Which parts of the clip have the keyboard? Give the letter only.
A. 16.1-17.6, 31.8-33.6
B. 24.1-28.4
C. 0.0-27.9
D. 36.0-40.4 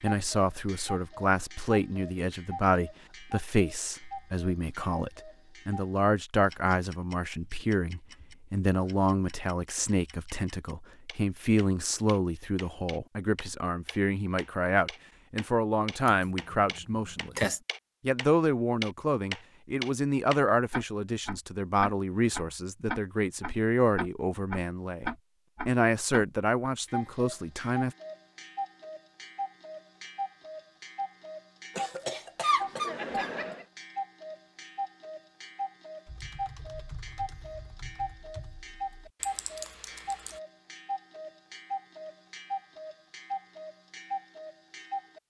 D.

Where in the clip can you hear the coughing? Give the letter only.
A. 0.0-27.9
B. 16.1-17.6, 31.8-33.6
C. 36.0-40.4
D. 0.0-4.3
B.